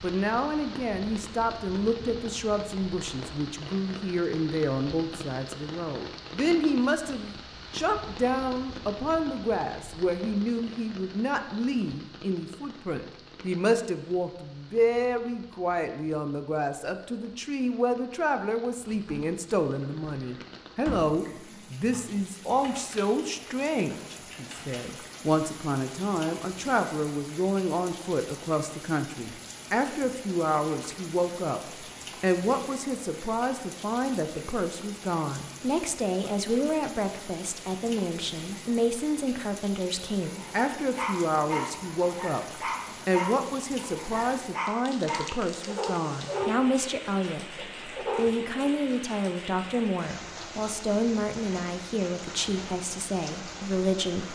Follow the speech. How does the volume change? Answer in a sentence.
The volume of the speech stays about the same.